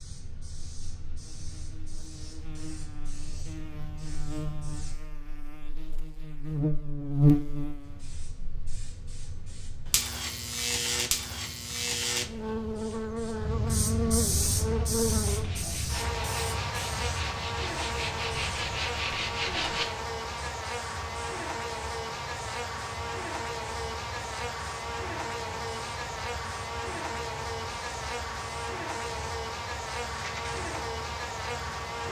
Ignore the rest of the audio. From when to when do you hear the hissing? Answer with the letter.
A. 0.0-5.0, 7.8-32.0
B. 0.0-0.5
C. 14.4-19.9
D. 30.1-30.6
A.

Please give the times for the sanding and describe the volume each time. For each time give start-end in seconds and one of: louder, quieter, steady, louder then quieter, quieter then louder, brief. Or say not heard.
14.4-19.9 louder.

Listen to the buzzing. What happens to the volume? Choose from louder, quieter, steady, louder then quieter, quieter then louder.
steady.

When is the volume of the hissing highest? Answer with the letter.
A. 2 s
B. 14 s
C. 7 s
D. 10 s
B.